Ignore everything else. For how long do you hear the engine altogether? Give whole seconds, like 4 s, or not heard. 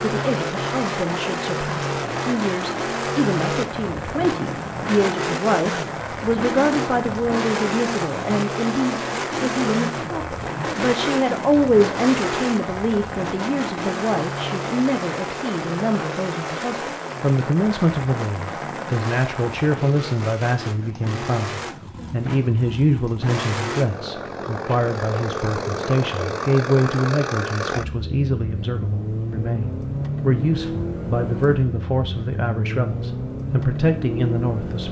35 s.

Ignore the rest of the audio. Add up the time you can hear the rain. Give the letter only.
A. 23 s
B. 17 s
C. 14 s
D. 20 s
D.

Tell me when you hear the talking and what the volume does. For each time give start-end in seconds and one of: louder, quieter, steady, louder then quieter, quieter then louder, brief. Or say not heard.
0.0-34.8 steady.